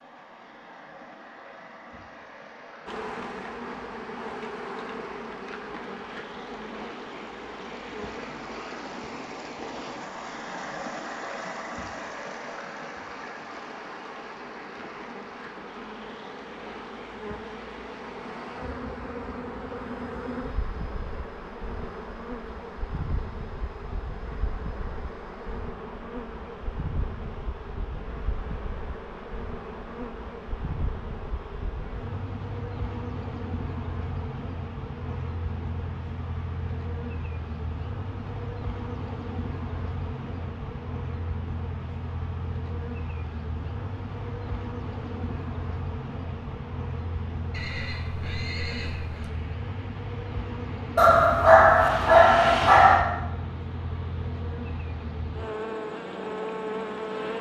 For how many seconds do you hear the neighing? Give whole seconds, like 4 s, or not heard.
2 s.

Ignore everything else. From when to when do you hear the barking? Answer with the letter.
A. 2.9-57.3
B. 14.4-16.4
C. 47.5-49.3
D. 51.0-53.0
D.